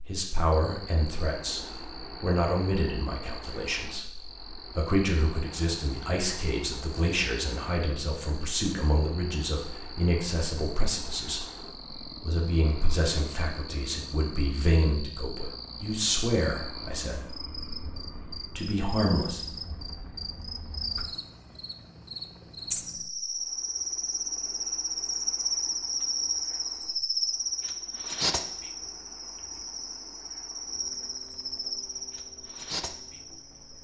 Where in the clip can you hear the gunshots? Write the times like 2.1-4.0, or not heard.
not heard.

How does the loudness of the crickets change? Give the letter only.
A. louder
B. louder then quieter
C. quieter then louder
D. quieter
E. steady
A.